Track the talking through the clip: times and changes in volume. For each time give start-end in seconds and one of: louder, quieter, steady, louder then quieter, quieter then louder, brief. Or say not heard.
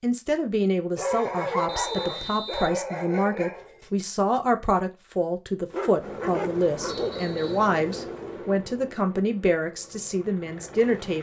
0.0-11.1 steady.